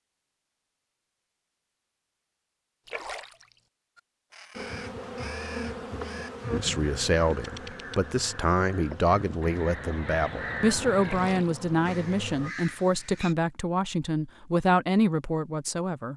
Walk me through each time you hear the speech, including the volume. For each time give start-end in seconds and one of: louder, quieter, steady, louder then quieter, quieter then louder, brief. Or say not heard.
6.5-16.1 steady.